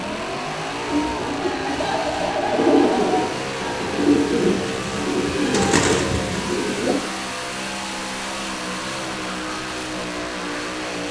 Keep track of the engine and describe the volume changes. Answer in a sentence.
The loudness of the engine stays about the same.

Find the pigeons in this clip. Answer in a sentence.
You can hear the pigeons from 0.8 to 7.0 s.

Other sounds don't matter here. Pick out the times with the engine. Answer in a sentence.
You can hear the engine from 0.0 to 11.0 s.